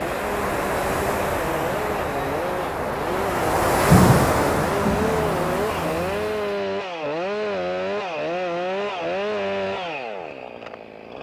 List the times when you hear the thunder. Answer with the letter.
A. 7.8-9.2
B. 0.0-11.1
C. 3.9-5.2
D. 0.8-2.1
C.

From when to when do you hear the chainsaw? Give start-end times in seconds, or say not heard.
0.0-11.1.